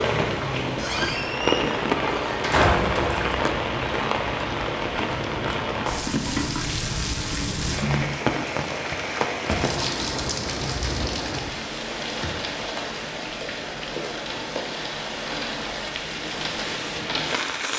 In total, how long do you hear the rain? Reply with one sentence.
The rain can be heard for 18 seconds in total.